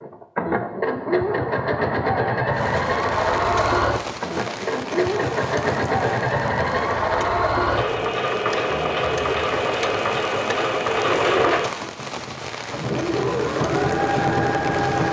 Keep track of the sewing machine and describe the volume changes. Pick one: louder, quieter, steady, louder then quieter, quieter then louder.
steady.